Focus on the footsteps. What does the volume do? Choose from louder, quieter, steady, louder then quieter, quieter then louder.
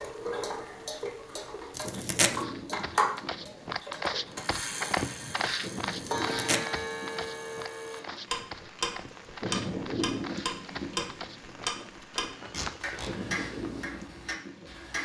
quieter.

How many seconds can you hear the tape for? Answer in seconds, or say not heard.
2 s.